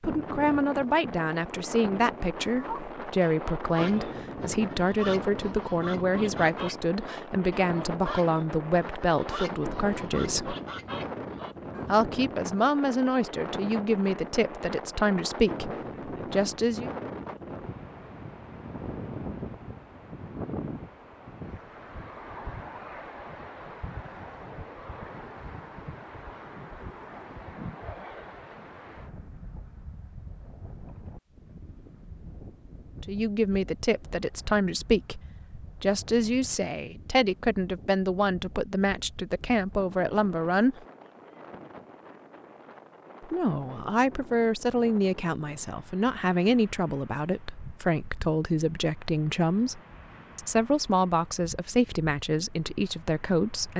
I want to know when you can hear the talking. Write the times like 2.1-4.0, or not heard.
0.0-10.6, 11.8-16.9, 33.0-40.8, 43.2-53.7.